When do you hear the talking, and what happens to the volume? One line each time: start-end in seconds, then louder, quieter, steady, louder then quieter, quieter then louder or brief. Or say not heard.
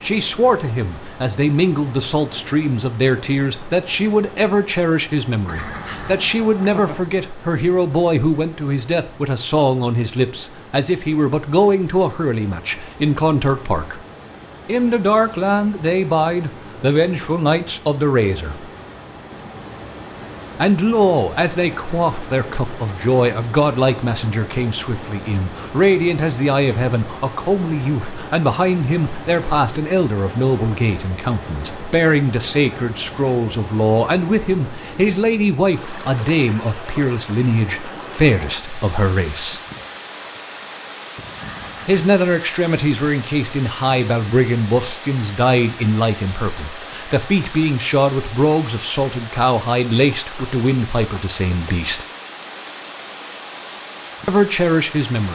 0.0-14.0 steady
14.7-18.7 steady
20.6-39.6 steady
41.9-52.0 steady
54.2-55.3 brief.